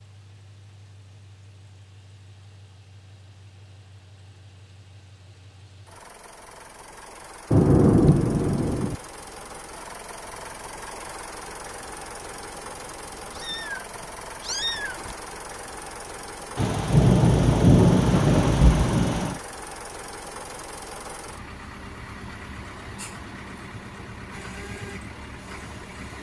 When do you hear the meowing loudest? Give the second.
15 s.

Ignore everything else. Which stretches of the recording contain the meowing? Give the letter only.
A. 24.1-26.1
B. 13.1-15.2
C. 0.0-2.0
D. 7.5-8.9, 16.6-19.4
B.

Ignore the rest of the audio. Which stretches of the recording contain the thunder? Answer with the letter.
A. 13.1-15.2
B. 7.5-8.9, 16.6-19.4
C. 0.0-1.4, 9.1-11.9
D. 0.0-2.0
B.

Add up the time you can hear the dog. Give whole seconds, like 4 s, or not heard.
not heard.